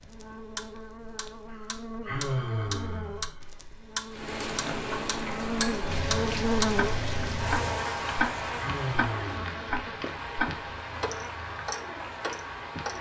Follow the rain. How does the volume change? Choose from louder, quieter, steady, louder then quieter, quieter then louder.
quieter.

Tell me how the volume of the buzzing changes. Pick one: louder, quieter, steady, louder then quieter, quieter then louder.
louder then quieter.